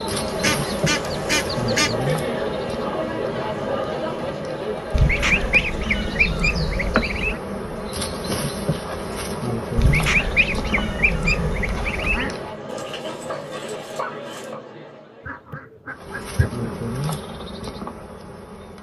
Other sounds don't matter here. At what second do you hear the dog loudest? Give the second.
14 s.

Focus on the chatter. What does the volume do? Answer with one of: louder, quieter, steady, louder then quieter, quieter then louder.
quieter.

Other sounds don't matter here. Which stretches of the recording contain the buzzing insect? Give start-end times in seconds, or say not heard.
0.0-12.6, 15.9-18.7.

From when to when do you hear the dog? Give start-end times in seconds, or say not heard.
12.7-14.6.